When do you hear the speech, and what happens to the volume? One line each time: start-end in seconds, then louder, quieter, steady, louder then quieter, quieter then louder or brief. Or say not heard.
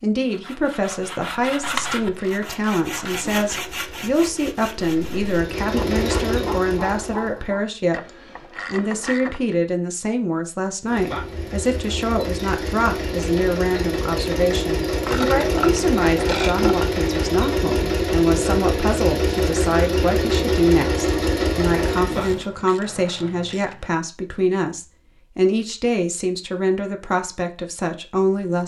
0.0-28.6 steady.